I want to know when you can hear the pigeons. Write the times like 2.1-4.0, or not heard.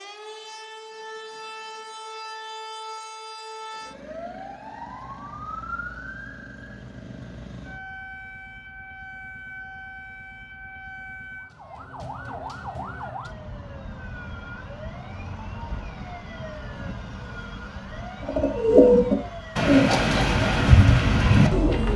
18.2-21.9.